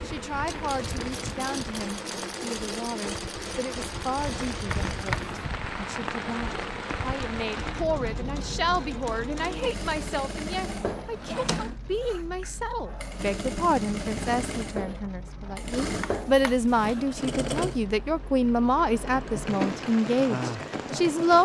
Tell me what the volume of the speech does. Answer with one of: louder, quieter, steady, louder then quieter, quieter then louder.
louder.